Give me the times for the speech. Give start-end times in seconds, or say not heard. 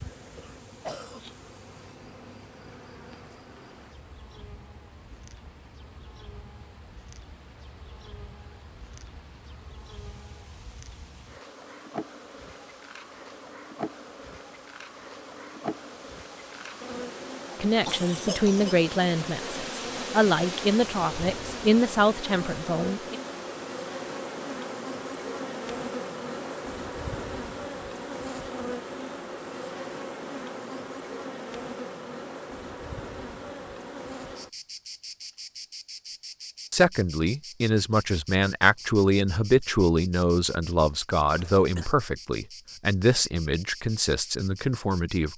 17.6-23.1, 36.7-45.3.